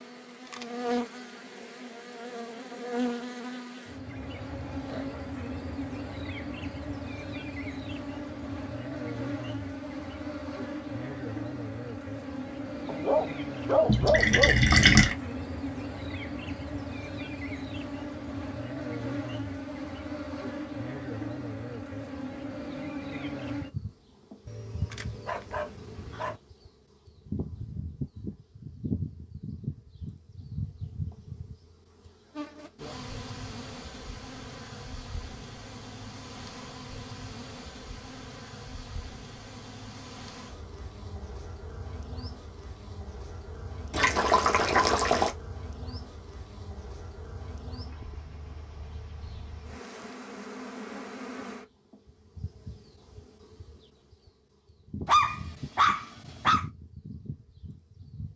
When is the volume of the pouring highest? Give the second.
15 s.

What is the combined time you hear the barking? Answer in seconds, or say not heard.
5 s.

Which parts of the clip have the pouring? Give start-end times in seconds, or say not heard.
13.8-15.2, 43.9-45.3.